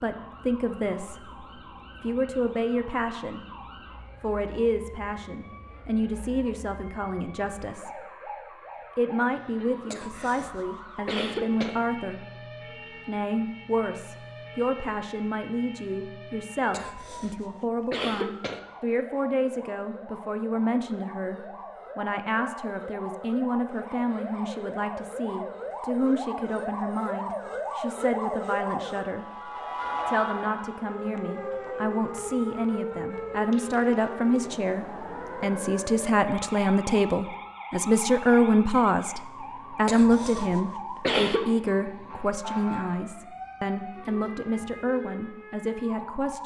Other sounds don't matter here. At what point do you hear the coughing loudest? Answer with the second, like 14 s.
41 s.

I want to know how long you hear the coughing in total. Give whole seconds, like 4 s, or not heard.
5 s.